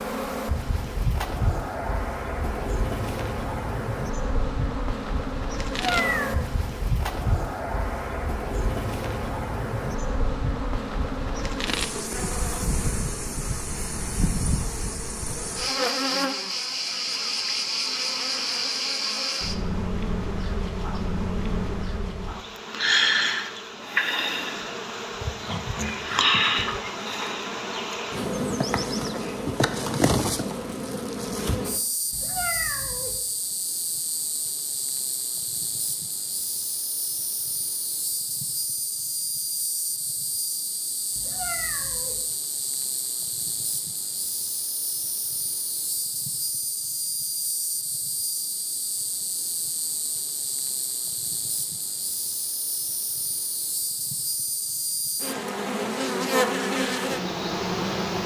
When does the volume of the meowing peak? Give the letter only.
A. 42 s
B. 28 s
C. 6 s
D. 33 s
C.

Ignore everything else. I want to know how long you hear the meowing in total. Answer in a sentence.
You can hear the meowing for 3 seconds altogether.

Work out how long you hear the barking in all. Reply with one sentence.
The barking can be heard for 2 seconds in total.